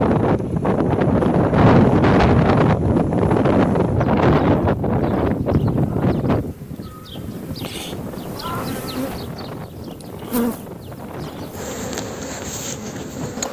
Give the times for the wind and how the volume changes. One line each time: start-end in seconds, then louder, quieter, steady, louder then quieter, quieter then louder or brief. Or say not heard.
0.0-13.4 quieter.